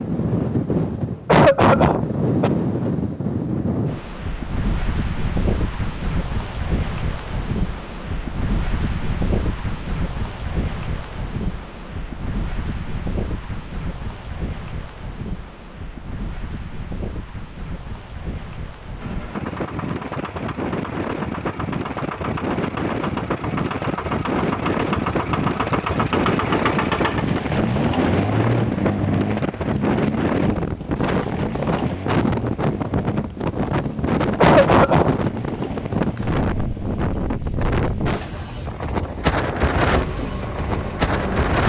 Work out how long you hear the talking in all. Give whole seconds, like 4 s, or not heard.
not heard.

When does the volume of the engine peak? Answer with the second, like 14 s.
28 s.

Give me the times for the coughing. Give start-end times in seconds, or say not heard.
1.2-2.5, 34.4-35.1.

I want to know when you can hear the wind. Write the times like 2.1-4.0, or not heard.
0.0-41.6.